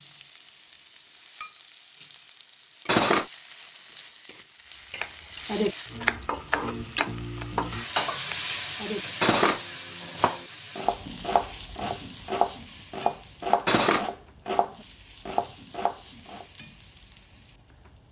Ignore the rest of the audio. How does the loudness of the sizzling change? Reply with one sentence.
The volume of the sizzling goes up, then down.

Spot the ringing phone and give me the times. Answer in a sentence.
You can't hear the ringing phone here.